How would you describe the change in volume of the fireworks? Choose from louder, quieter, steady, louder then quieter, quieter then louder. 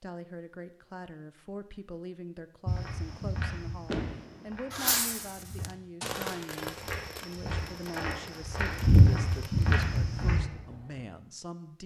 quieter.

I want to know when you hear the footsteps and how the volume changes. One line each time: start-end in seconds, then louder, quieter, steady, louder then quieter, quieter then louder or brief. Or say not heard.
2.6-10.4 quieter then louder.